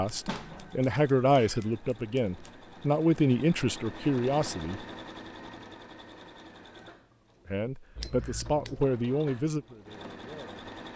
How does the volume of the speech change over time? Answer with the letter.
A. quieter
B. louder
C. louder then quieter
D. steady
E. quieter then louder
A.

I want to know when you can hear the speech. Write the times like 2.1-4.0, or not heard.
0.0-4.8, 7.5-10.7.